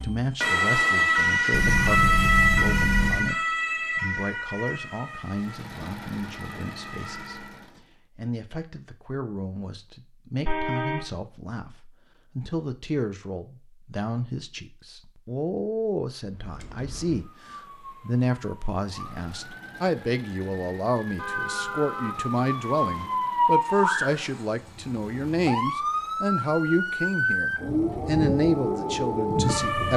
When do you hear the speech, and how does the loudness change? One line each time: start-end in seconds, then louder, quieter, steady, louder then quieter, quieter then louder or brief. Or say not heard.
0.0-29.9 louder.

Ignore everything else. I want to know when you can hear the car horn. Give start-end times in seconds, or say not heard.
1.5-3.4, 10.4-11.1, 21.1-23.1.